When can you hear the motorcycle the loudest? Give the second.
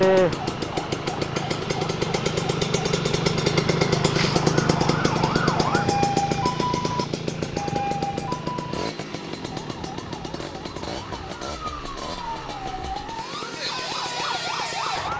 4 s.